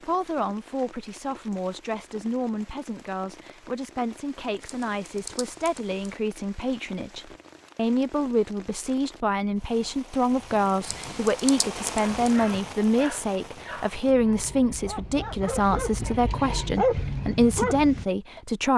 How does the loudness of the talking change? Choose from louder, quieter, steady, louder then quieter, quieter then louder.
louder.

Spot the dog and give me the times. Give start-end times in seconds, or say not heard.
11.9-18.4.